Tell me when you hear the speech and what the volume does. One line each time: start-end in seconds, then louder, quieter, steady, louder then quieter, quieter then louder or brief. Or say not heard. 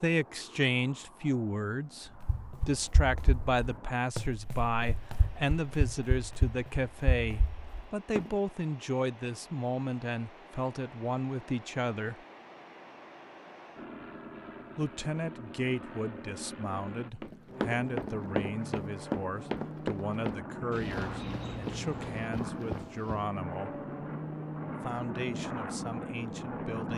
0.0-12.2 steady
14.8-23.8 steady
24.8-26.9 brief.